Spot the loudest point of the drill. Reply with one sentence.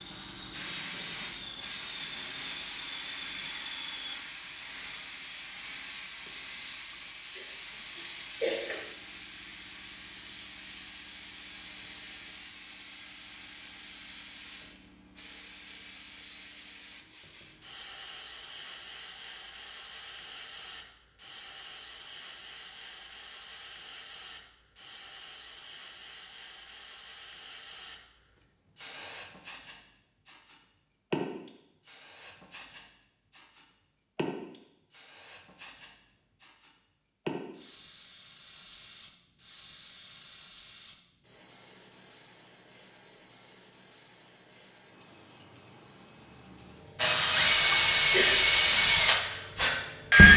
The loudest moment of the drill is at 50 seconds.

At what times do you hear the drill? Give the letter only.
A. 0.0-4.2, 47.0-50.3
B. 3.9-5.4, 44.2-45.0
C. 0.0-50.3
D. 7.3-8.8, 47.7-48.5
A.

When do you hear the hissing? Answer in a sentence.
You can hear the hissing from 0.0 to 50.3 s.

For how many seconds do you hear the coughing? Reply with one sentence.
You can hear the coughing for 2 seconds altogether.